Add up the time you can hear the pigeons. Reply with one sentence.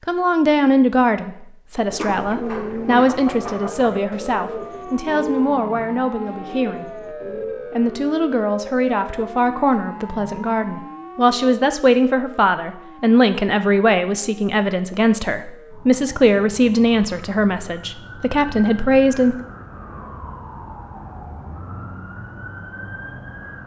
You can hear the pigeons for 6 seconds altogether.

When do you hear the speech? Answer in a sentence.
You can hear the speech from 0.1 to 19.4 s.